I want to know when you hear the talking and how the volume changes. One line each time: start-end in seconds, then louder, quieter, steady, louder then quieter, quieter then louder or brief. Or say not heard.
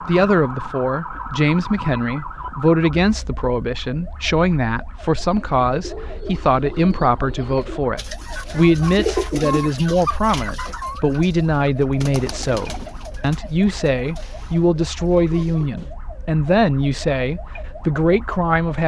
0.0-18.8 steady.